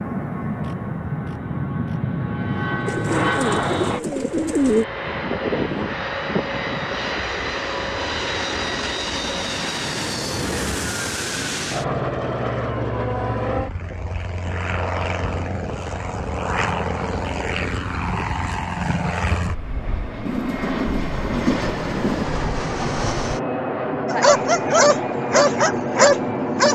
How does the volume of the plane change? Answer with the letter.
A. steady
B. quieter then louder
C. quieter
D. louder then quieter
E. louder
A.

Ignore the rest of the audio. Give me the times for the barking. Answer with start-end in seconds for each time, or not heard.
24.1-26.7.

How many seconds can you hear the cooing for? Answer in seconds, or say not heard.
4 s.